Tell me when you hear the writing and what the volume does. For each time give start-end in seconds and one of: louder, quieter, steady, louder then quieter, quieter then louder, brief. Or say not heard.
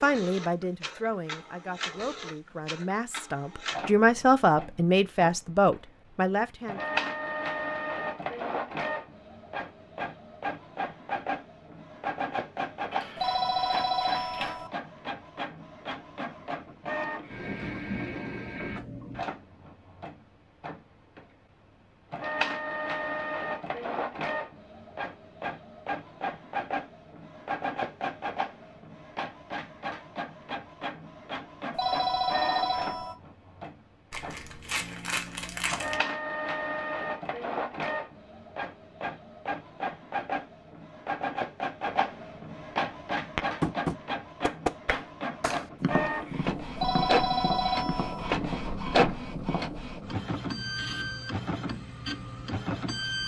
not heard.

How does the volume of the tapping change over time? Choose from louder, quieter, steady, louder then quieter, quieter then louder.
quieter.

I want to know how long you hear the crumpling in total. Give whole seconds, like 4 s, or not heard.
4 s.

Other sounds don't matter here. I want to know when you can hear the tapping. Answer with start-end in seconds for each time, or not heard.
43.4-49.7.